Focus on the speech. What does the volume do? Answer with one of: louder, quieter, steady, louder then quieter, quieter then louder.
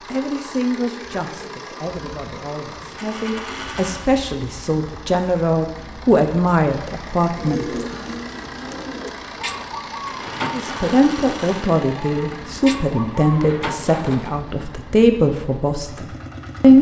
louder.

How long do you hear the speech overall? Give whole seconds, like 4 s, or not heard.
14 s.